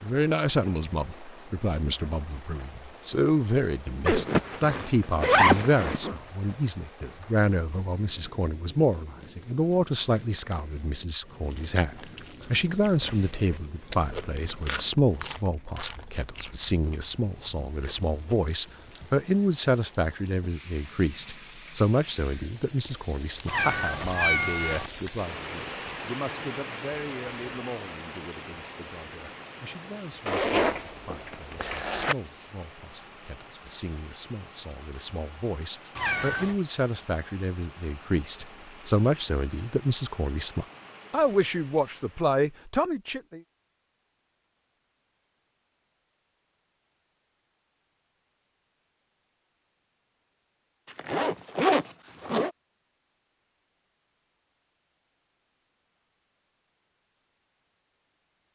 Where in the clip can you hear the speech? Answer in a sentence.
The speech can be heard from 0.0 to 43.4 s.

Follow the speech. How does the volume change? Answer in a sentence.
The loudness of the speech goes down, then up.